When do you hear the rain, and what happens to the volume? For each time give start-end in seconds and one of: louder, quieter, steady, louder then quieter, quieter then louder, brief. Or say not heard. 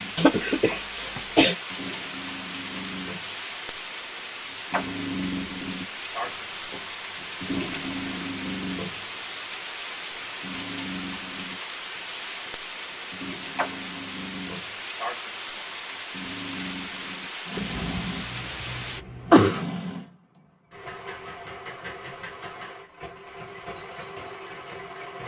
0.0-19.1 steady.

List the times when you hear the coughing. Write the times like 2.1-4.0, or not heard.
0.1-1.6, 17.6-19.6.